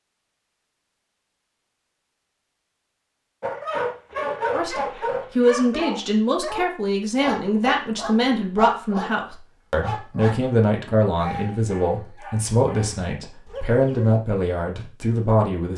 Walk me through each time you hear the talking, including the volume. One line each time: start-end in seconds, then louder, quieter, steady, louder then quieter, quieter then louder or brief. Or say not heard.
4.5-15.7 steady.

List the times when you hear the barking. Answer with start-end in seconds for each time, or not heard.
3.4-10.5, 11.2-14.2.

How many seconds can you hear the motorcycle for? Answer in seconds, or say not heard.
not heard.